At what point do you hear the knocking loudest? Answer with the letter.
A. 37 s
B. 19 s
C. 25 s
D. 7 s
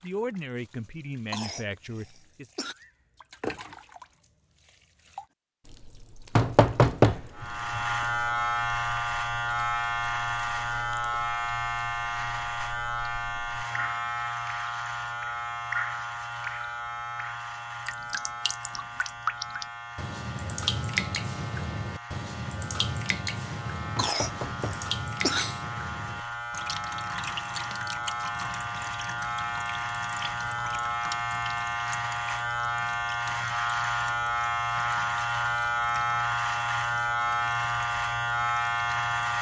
D.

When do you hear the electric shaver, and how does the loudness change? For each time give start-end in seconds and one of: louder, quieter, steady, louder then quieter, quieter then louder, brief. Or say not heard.
7.3-39.3 quieter then louder.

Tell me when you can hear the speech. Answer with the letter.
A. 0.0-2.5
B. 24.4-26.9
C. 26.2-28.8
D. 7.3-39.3
A.